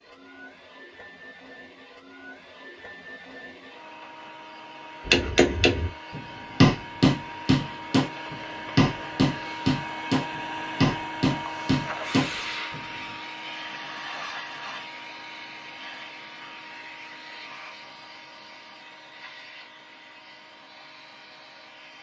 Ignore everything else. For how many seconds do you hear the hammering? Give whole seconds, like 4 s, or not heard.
8 s.